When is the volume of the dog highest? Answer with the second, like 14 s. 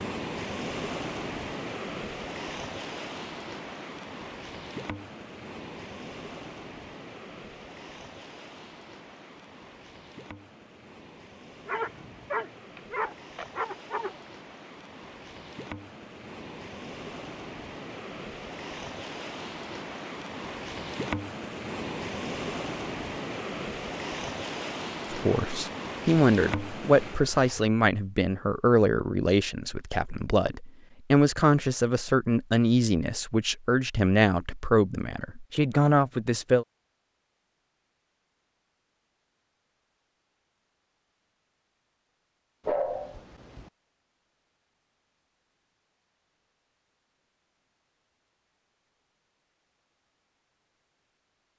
43 s.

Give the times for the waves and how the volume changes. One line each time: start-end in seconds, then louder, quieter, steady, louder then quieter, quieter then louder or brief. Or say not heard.
0.0-27.7 quieter then louder.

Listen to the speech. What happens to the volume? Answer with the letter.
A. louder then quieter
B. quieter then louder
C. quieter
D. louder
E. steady
E.